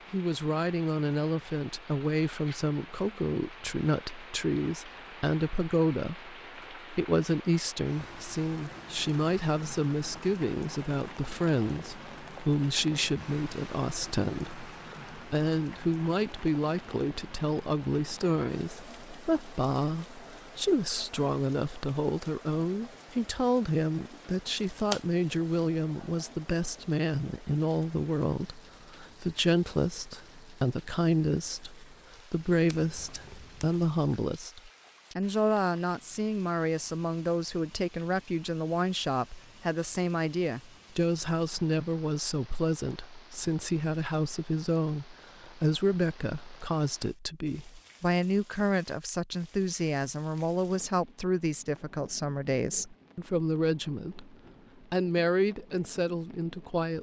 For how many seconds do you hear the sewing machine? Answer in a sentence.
You can't hear the sewing machine here.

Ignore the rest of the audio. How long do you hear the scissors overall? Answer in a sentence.
The scissors can be heard for 2 seconds in total.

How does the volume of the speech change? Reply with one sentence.
The loudness of the speech stays about the same.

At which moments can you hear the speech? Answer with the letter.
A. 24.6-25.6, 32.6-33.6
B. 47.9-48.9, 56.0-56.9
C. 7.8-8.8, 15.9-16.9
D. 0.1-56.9
D.